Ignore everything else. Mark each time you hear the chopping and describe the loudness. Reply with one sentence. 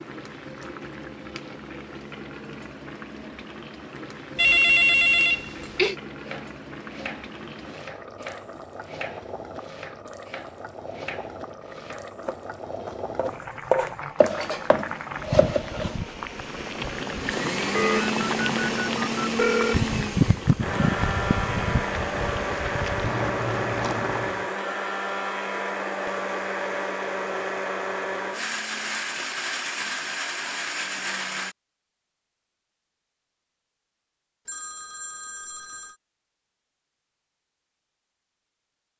The chopping can be heard from 6.2 to 15.9 s, getting louder.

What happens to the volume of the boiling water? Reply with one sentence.
The loudness of the boiling water goes up.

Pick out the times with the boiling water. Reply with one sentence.
The boiling water can be heard from 0.0 to 24.5 s.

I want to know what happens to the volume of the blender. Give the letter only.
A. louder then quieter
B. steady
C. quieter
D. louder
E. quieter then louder
B.